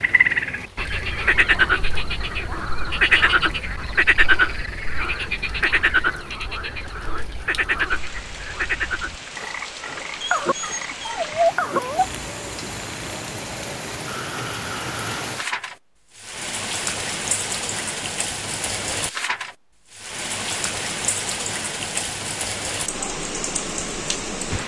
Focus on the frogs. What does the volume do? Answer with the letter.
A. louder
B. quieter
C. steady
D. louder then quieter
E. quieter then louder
B.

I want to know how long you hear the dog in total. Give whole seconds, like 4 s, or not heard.
2 s.